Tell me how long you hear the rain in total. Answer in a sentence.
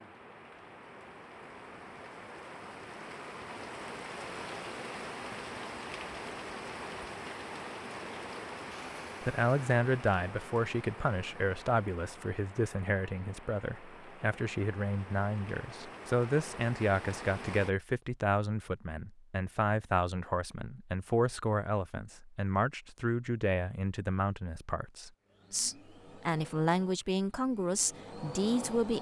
You can hear the rain for 18 seconds altogether.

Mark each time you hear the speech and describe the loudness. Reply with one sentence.
You can hear the speech from 9.2 to 28.9 s, at a steady volume.